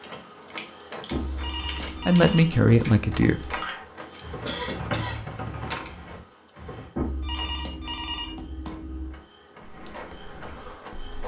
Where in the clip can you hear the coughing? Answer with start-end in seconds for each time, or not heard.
4.1-5.2.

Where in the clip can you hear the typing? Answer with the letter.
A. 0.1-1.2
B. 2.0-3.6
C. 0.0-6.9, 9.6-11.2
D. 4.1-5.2
C.